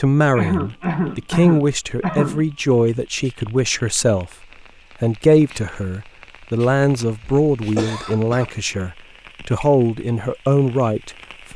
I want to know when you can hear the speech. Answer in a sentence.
You can hear the speech from 0.0 to 4.3 s and from 5.0 to 11.5 s.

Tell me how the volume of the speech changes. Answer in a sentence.
The loudness of the speech stays about the same.